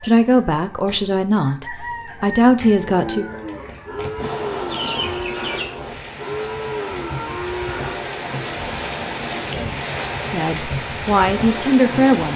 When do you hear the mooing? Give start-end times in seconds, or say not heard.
2.8-8.1.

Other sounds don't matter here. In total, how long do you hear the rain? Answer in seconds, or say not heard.
8 s.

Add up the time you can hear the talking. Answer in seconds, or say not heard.
5 s.